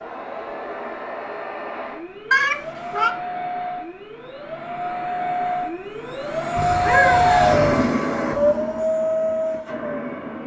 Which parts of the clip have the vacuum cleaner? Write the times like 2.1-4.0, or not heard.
0.0-10.4.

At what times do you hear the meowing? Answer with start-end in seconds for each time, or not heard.
2.3-3.1, 6.5-8.0.